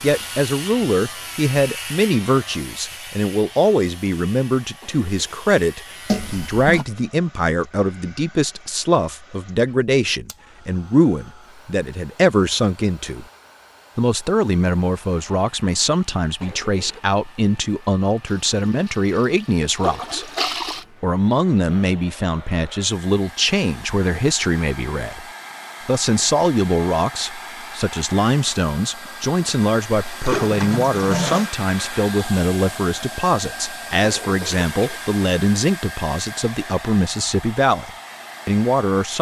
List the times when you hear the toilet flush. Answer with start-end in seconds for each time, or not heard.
6.0-6.8, 18.2-20.9, 30.2-31.5.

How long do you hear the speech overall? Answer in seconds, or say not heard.
37 s.